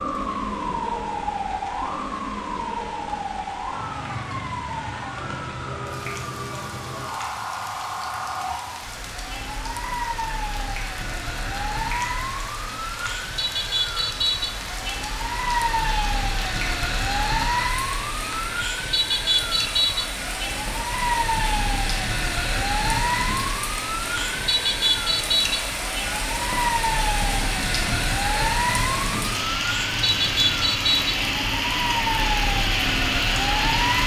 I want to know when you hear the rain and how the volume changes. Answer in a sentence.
You can hear the rain from 0.0 to 34.0 s, getting louder.